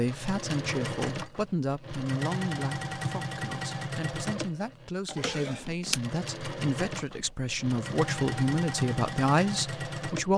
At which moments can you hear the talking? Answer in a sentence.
You can hear the talking from 0.0 to 10.3 s.